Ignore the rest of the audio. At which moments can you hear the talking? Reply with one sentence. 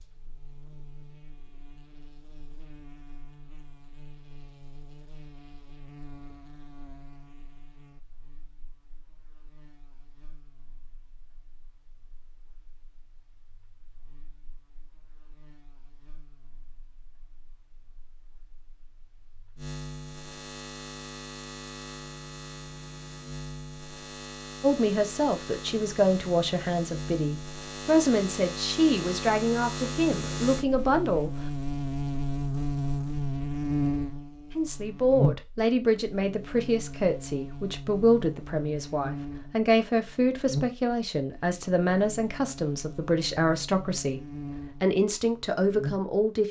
You can hear the talking from 24.6 to 31.3 s and from 34.5 to 46.4 s.